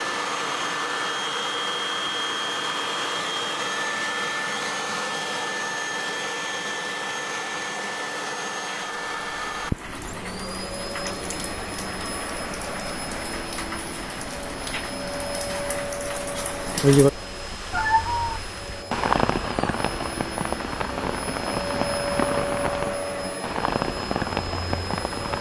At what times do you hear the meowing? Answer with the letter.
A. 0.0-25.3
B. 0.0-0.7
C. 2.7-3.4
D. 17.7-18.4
D.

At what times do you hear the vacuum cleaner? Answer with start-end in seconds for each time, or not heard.
0.0-25.3.